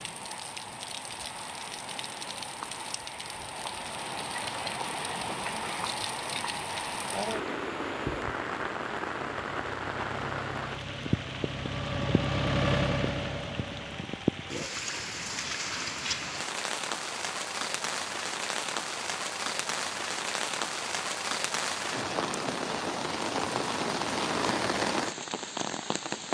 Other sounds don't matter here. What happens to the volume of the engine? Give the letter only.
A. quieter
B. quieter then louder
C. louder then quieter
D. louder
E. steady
C.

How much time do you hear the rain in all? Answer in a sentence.
The rain can be heard for 26 seconds in total.